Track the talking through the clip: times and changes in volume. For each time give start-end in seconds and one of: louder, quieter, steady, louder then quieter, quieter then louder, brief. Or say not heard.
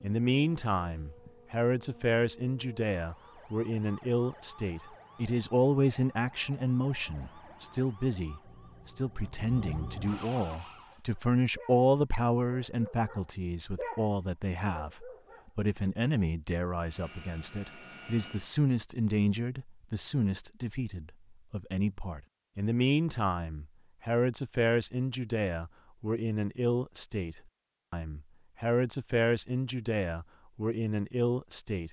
0.0-31.8 steady.